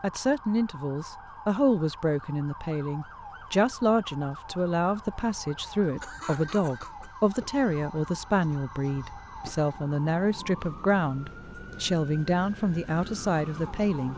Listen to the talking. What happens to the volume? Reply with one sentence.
The loudness of the talking stays about the same.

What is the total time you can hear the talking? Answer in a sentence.
The talking can be heard for 14 seconds in total.